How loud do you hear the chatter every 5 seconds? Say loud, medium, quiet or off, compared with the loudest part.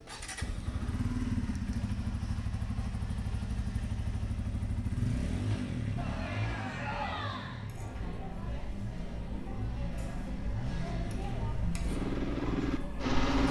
off, loud, loud.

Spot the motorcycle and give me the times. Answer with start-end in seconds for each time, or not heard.
0.0-13.4.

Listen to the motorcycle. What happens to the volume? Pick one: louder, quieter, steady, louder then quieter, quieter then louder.
quieter then louder.